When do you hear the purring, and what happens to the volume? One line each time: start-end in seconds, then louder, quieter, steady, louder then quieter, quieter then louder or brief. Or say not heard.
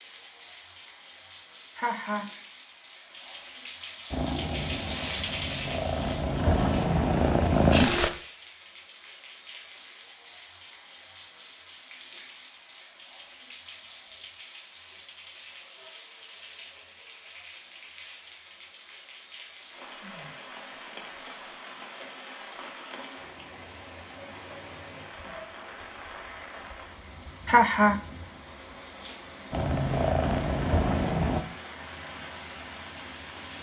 4.1-8.1 louder
29.5-31.4 brief.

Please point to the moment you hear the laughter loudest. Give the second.
28 s.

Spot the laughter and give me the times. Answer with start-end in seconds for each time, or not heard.
1.8-2.3, 27.4-28.0.